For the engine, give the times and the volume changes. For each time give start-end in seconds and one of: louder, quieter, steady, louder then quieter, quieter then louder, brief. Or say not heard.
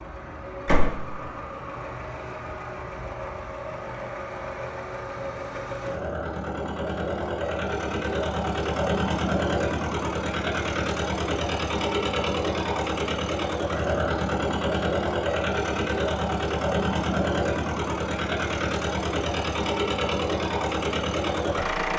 0.0-21.9 louder.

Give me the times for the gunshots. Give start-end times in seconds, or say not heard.
0.7-1.1.